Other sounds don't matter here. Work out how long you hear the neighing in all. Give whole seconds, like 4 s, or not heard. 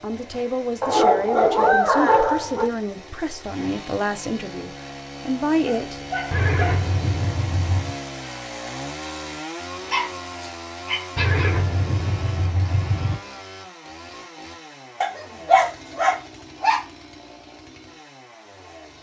4 s.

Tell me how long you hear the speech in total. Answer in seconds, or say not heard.
6 s.